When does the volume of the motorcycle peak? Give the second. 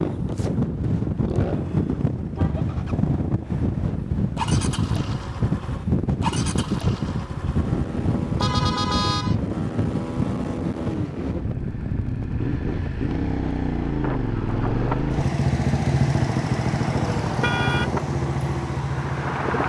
16 s.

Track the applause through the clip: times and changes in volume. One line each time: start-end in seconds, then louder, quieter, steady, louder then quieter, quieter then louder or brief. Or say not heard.
not heard.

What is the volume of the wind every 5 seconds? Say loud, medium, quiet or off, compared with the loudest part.
loud, loud, medium, medium.